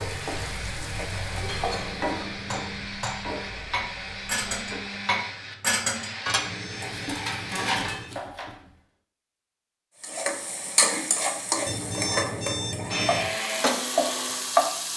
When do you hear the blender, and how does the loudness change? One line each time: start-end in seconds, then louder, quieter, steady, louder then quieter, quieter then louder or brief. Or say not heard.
0.0-7.7 steady
12.8-14.9 brief.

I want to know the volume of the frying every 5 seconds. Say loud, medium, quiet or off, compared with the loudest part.
medium, off, loud.